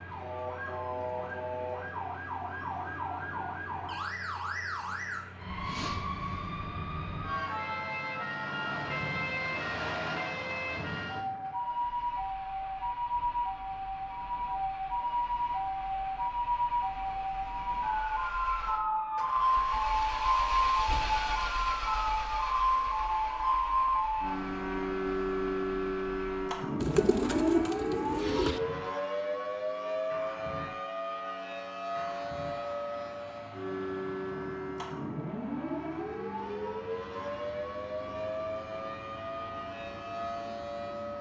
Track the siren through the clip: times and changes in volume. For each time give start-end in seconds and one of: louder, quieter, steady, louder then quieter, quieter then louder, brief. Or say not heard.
0.0-41.1 louder then quieter.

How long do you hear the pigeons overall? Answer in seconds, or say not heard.
2 s.